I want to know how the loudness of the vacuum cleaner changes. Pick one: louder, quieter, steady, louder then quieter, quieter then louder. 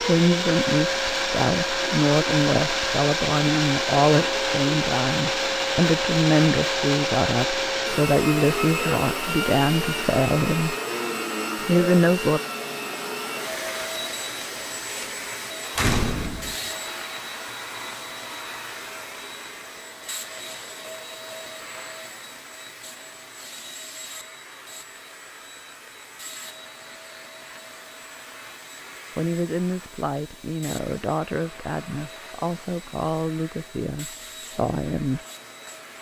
quieter.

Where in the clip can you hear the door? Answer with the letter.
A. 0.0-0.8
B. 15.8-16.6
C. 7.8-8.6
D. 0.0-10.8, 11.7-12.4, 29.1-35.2
B.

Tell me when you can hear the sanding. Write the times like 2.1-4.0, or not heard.
not heard.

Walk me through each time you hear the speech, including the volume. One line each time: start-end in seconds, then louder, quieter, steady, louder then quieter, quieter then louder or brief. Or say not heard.
0.0-10.8 steady
11.7-12.4 brief
29.1-35.2 steady.